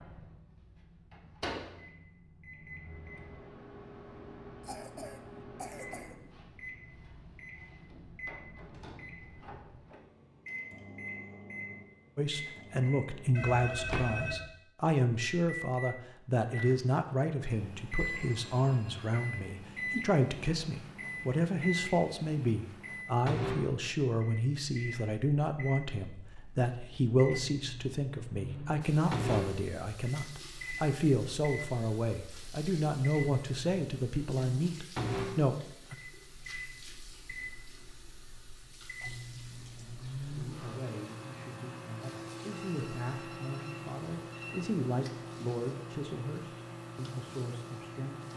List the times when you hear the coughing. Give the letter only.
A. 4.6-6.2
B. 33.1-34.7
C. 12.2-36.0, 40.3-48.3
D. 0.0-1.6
A.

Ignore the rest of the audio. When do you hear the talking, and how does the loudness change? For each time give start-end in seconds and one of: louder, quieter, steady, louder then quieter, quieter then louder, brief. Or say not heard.
12.2-36.0 steady
40.3-48.3 louder then quieter.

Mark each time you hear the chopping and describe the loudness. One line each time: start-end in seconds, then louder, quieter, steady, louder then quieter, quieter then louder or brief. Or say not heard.
not heard.